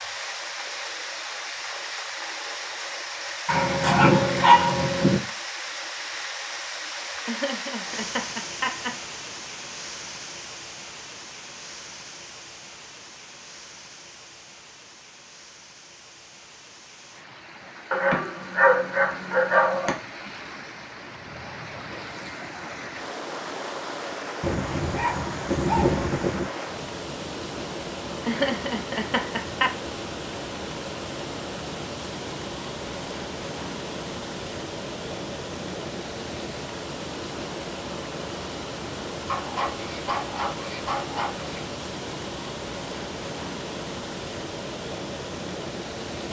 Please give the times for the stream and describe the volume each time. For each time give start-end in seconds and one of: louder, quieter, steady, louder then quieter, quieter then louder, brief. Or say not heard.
0.0-46.2 quieter then louder.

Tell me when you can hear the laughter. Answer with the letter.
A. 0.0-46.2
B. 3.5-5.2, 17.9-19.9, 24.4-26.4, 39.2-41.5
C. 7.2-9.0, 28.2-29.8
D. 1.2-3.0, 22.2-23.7
C.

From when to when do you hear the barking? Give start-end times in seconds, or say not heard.
3.5-5.2, 17.9-19.9, 24.4-26.4, 39.2-41.5.